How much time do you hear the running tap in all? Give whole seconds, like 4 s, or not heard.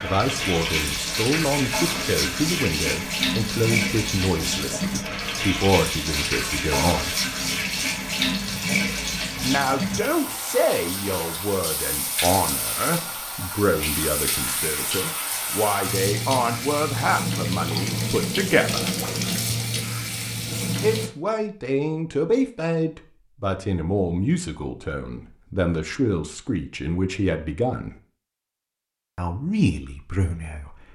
21 s.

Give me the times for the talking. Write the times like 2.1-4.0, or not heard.
0.0-7.2, 9.4-18.9, 20.8-27.9, 29.1-30.9.